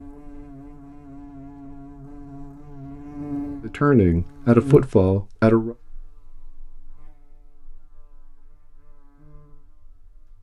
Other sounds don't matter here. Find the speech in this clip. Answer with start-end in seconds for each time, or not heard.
3.6-5.8.